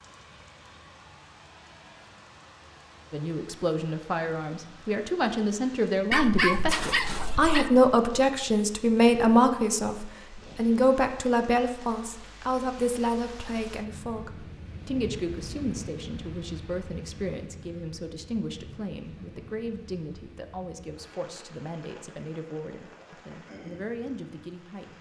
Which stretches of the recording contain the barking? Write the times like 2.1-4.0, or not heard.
6.1-7.7.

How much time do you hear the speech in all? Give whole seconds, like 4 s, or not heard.
22 s.